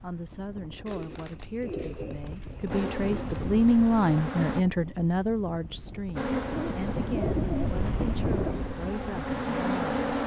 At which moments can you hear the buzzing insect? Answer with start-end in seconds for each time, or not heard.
2.6-4.7, 6.2-10.2.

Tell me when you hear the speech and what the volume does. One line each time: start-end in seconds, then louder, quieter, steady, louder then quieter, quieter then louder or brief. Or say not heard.
0.0-10.2 louder then quieter.